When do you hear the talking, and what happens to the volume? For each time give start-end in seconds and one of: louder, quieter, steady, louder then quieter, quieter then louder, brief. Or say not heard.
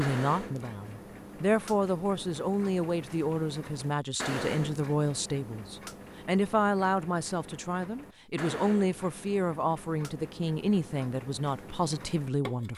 0.0-12.7 steady.